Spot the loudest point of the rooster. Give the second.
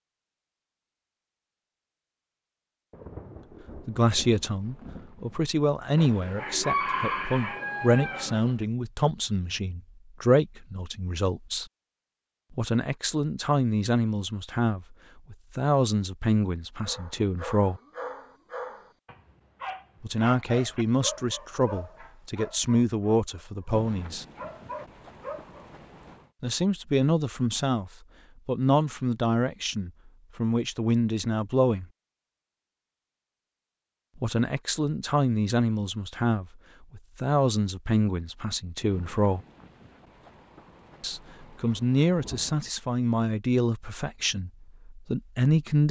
7 s.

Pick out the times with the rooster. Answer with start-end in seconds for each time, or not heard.
6.0-8.7.